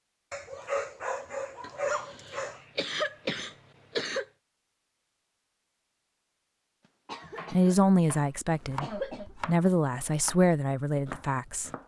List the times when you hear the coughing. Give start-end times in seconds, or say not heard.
1.6-4.2, 7.0-7.8, 8.8-9.3.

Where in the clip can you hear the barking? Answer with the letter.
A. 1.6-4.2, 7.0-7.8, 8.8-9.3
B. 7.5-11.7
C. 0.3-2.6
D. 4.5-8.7
C.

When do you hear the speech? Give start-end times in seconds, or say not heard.
7.5-11.7.